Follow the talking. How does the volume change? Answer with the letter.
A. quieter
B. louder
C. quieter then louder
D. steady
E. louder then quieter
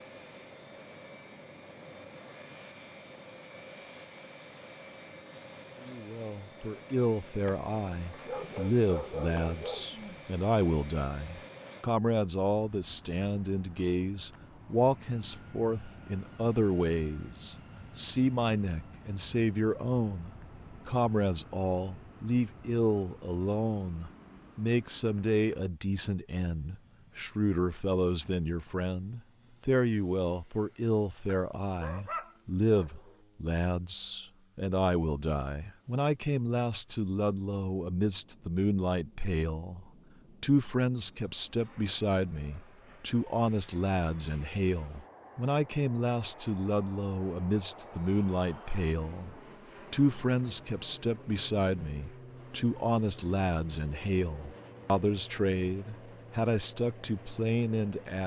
D.